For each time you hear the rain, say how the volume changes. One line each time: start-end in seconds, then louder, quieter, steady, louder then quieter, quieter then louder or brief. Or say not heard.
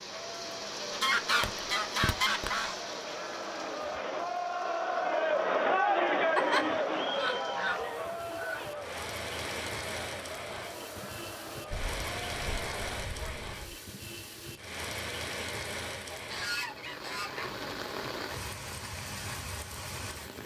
0.0-20.4 quieter then louder.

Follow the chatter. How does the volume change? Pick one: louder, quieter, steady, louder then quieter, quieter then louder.
louder then quieter.